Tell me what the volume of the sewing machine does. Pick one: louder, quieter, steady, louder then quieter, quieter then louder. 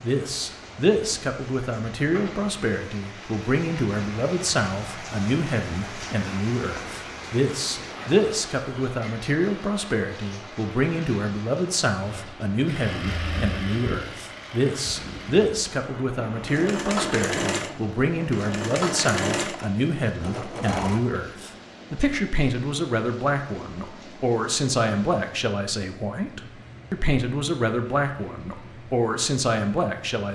quieter then louder.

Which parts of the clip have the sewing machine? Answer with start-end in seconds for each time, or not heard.
12.0-21.1.